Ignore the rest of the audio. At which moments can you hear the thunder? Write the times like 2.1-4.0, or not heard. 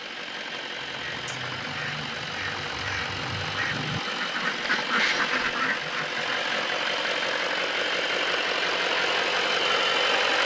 not heard.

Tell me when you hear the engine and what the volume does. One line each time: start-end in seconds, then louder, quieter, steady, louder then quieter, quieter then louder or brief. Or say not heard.
0.0-10.4 louder.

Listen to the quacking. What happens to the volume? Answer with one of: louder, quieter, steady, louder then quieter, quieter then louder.
louder.